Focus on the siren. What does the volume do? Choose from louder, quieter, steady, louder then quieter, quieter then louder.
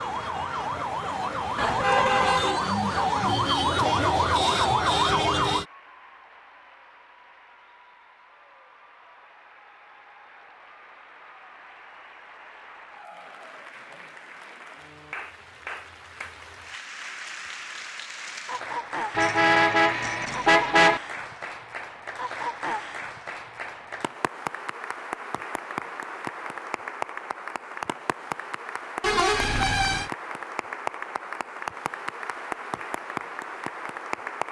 louder.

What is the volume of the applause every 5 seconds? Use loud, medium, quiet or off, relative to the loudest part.
medium, quiet, quiet, loud, loud, loud, loud.